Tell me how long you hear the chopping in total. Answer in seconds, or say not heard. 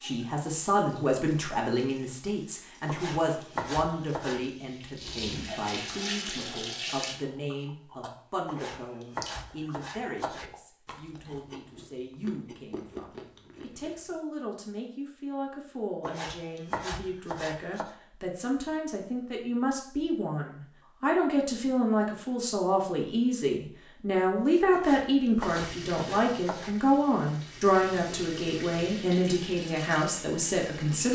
8 s.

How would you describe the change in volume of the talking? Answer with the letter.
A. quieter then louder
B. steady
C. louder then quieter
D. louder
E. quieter
A.